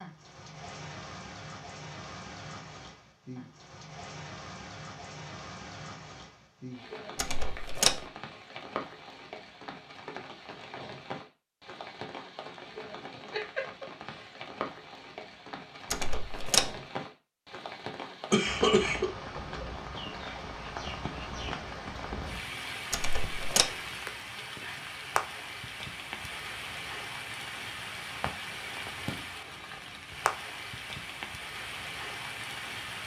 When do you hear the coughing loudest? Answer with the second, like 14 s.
19 s.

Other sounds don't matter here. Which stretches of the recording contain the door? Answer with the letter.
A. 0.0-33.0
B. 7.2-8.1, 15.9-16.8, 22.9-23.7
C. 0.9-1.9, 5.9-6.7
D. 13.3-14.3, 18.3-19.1
B.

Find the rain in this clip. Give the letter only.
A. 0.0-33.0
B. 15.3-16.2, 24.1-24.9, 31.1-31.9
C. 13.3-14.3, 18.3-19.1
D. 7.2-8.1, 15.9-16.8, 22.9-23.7
A.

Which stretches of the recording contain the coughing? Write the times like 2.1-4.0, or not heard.
13.3-14.3, 18.3-19.1.